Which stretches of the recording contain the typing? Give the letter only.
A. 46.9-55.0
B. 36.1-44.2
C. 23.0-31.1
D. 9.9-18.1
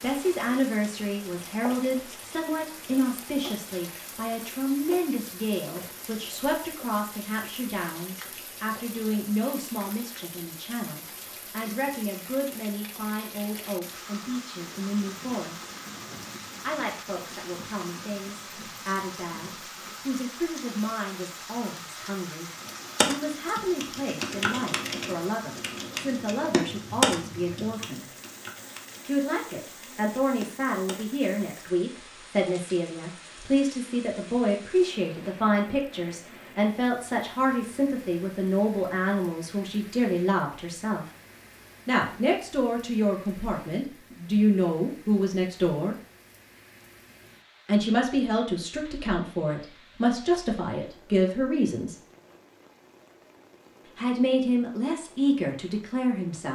C.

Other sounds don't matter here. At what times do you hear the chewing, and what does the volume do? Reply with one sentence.
You can't hear the chewing here.